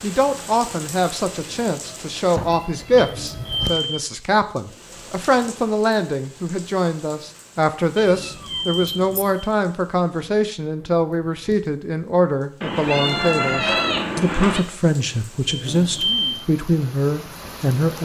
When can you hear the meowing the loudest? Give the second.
14 s.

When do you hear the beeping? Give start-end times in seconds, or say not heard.
3.0-3.8, 8.0-9.4, 15.4-16.4.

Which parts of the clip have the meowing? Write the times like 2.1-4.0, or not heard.
1.9-3.8, 8.1-9.2, 12.6-14.6.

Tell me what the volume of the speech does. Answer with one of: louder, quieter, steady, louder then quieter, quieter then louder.
steady.